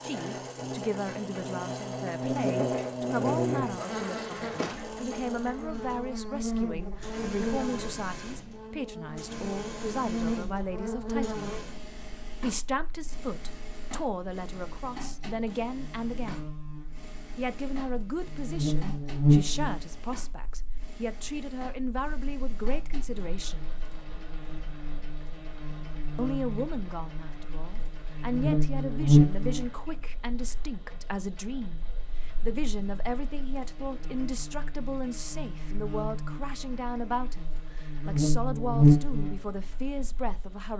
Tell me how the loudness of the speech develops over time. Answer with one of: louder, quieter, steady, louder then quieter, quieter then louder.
steady.